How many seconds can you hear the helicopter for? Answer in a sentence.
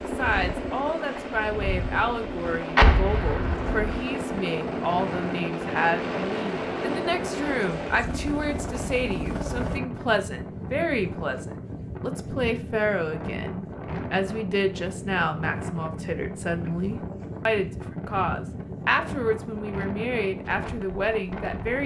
The helicopter can be heard for 10 seconds in total.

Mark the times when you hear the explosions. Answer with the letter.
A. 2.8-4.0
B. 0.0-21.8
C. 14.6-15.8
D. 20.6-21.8
A.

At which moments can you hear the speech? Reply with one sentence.
The speech can be heard from 0.0 to 21.8 s.